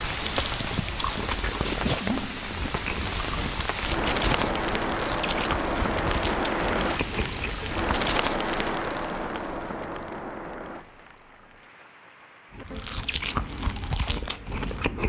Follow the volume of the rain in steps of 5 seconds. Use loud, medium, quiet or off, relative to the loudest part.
loud, loud, quiet.